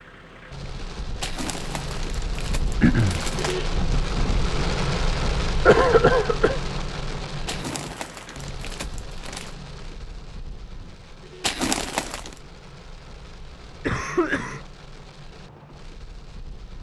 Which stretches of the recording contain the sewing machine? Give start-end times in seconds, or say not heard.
not heard.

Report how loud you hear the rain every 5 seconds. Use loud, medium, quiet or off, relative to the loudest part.
loud, loud, quiet, quiet.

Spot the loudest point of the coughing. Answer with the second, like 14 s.
6 s.